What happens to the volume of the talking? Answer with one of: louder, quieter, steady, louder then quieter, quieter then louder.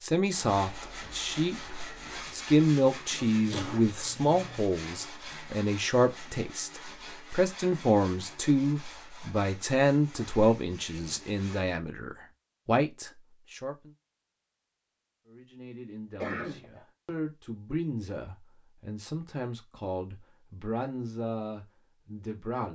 quieter.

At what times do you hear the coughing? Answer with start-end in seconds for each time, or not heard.
3.5-4.6, 16.2-16.8.